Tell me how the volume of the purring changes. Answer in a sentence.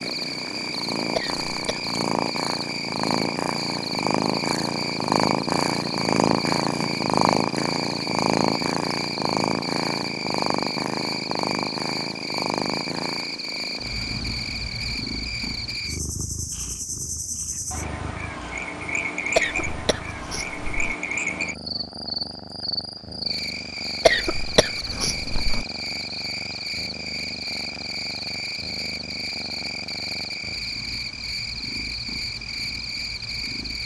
The volume of the purring goes down.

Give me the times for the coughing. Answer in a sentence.
The coughing can be heard from 1.1 to 1.9 s, from 19.4 to 20.9 s and from 24.1 to 25.6 s.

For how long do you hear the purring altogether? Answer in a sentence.
The purring can be heard for 34 seconds in total.